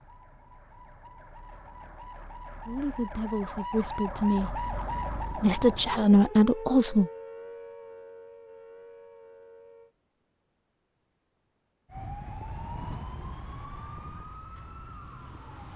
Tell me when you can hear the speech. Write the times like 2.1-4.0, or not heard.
2.6-7.1.